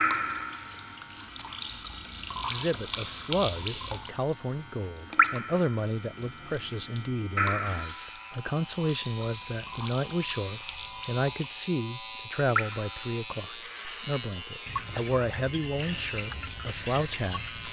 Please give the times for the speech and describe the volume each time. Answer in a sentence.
The speech can be heard from 2.5 to 17.6 s, at a steady volume.